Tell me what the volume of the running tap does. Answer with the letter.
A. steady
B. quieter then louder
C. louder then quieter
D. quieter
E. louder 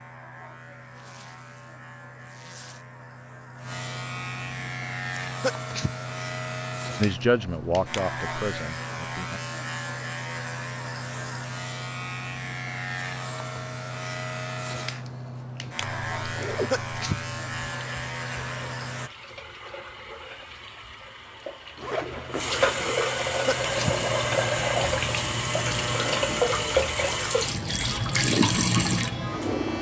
E.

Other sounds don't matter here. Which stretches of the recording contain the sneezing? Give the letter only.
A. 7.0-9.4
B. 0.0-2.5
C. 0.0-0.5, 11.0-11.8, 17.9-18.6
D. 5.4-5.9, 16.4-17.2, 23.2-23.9
D.